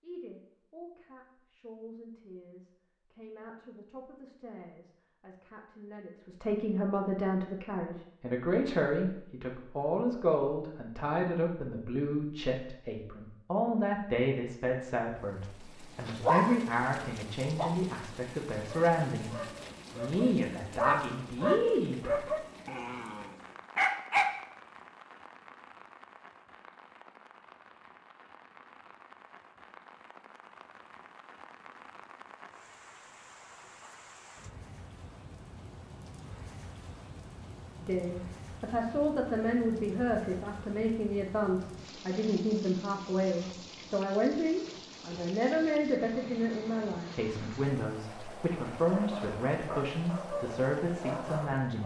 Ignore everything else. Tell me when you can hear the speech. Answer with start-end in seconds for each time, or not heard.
0.0-22.4, 37.8-51.8.